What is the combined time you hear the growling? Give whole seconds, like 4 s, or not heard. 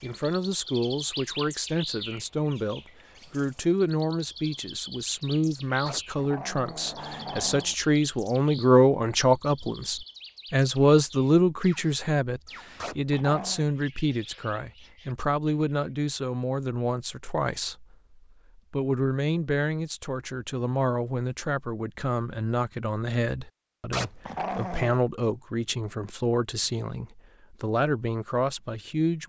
4 s.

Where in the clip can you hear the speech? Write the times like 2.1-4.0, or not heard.
0.0-29.2.